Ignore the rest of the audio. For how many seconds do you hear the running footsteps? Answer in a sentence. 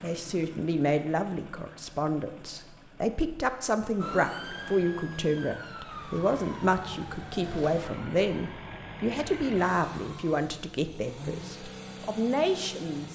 You can't hear the running footsteps here.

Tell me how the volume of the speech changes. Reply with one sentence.
The loudness of the speech stays about the same.